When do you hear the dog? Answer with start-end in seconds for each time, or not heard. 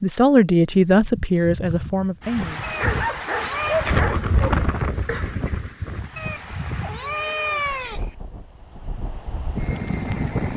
0.9-7.2.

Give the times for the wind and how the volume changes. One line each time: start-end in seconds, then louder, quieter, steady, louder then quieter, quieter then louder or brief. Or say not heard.
2.2-10.5 quieter then louder.